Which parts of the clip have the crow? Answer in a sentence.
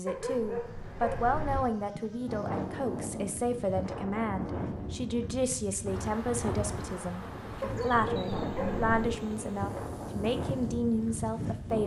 You can't hear the crow here.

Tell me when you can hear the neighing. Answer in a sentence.
You can't hear the neighing here.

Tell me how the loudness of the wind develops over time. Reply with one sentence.
The loudness of the wind stays about the same.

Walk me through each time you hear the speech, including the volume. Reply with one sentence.
You can hear the speech from 0.0 to 11.8 s, at a steady volume.